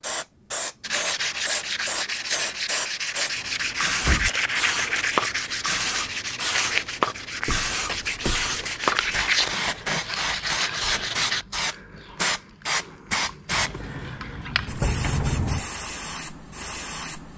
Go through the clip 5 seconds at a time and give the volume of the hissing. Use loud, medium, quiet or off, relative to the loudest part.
loud, loud, loud, medium.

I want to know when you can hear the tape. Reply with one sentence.
The tape can be heard from 4.1 to 5.0 s.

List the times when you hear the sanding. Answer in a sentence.
The sanding can be heard from 0.8 to 11.4 s.